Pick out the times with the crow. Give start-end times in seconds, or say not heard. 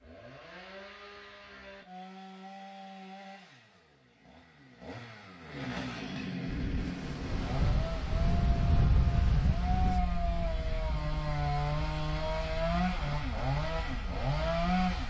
not heard.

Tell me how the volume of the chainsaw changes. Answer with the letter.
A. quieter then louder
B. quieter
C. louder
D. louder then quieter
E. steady
C.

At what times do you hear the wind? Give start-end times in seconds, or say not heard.
6.5-15.0.